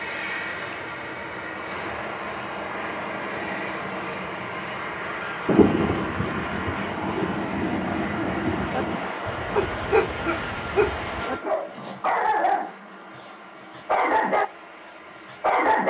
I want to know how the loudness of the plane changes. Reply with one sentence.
The volume of the plane goes down.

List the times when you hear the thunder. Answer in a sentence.
You can hear the thunder from 5.5 to 9.1 s.